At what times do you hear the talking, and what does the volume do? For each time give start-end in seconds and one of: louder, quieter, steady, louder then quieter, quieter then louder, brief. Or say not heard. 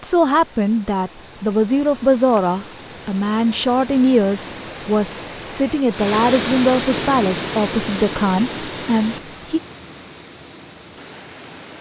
0.0-9.6 steady.